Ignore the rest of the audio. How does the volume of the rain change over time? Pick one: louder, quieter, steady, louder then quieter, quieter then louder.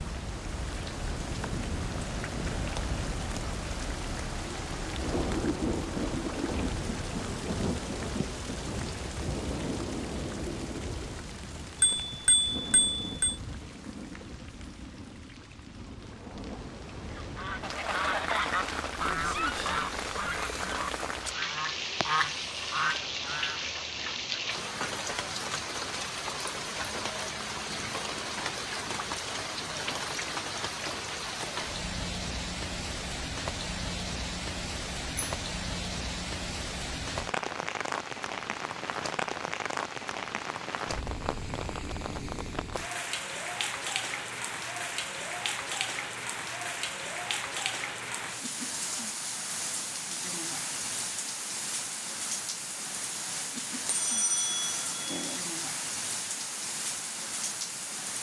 steady.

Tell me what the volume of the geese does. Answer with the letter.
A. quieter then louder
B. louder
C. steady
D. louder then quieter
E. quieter
A.